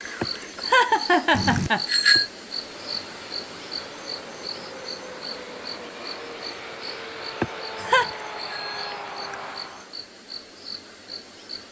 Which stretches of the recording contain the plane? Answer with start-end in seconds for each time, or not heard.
2.5-10.0.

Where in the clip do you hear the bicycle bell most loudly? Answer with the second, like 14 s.
2 s.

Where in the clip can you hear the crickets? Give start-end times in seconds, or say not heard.
0.0-11.6.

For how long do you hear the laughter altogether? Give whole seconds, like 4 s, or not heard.
3 s.